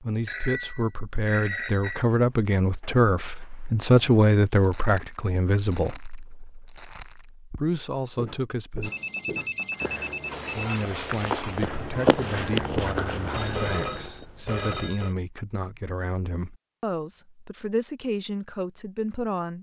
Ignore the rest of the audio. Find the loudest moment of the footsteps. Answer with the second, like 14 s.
12 s.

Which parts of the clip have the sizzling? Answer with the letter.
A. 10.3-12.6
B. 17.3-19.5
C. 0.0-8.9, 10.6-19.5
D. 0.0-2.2
A.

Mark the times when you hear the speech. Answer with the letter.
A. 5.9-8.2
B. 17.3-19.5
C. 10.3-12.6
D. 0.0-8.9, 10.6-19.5
D.